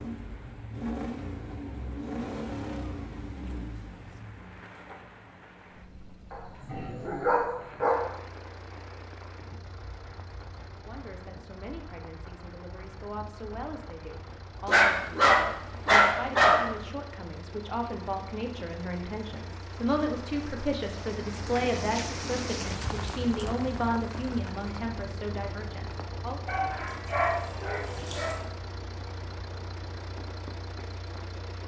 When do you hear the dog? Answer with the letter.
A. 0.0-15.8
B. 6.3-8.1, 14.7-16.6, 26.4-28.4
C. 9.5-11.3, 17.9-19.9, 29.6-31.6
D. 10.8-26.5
B.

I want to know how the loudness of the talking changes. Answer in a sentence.
The loudness of the talking goes up.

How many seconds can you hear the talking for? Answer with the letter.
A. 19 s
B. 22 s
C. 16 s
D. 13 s
C.